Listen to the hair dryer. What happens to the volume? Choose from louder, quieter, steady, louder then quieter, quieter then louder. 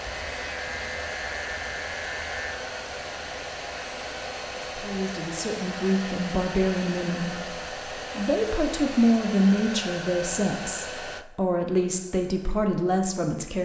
steady.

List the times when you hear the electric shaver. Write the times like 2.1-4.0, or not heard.
0.0-2.6.